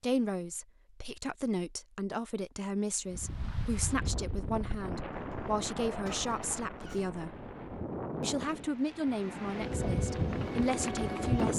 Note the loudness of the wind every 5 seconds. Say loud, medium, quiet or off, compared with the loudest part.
medium, medium, loud.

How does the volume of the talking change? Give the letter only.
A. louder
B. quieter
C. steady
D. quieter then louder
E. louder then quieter
C.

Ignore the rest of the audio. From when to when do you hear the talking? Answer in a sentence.
The talking can be heard from 0.0 to 7.3 s and from 8.2 to 11.5 s.